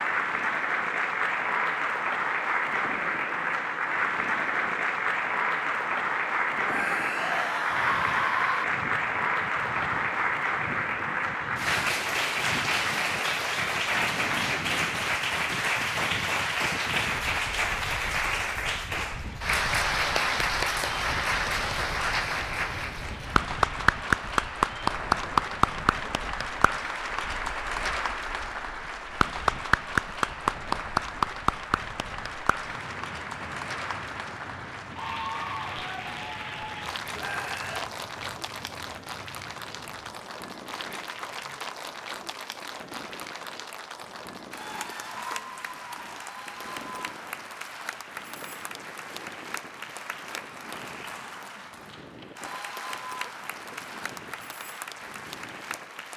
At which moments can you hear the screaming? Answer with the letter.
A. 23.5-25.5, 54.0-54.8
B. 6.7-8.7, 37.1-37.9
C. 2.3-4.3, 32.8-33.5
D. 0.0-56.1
B.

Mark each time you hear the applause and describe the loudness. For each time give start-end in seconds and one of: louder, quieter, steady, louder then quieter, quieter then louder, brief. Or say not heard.
0.0-56.1 quieter.